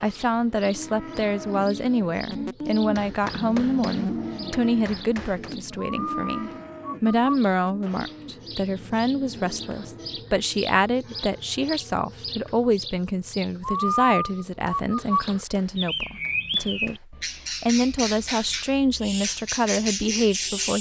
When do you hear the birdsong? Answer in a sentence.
The birdsong can be heard from 0.0 to 20.7 s.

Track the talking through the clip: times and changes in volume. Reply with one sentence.
You can hear the talking from 0.0 to 20.7 s, at a steady volume.